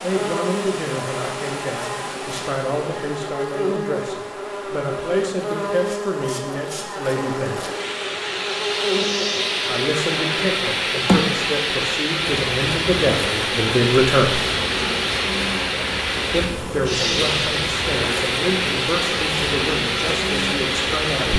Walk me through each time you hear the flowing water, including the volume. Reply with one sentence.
The flowing water can be heard from 0.0 to 21.3 s, getting louder.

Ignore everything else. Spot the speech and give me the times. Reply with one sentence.
You can hear the speech from 0.0 to 7.7 s, from 9.7 to 14.4 s and from 16.3 to 21.3 s.